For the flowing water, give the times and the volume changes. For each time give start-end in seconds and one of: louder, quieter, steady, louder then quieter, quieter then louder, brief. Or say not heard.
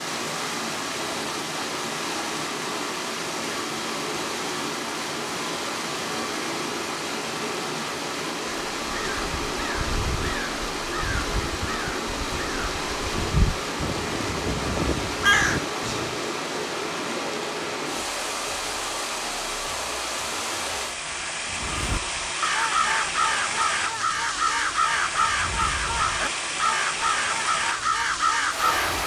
0.0-29.0 steady.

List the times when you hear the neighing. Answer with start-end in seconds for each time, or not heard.
not heard.